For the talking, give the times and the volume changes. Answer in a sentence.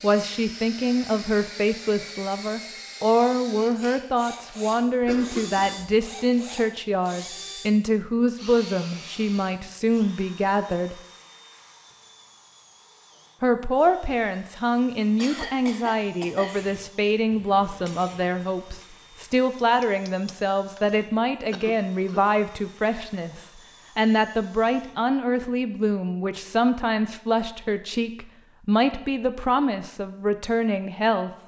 The talking can be heard from 0.0 to 11.0 s, at a steady volume; and from 13.4 to 31.3 s, at a steady volume.